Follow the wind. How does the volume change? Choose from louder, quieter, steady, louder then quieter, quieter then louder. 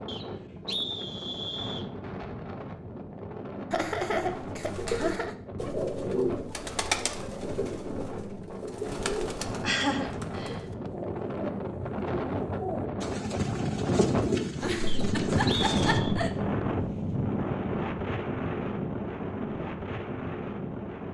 louder.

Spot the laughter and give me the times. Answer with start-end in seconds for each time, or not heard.
3.7-5.3, 9.2-10.6, 14.6-16.3.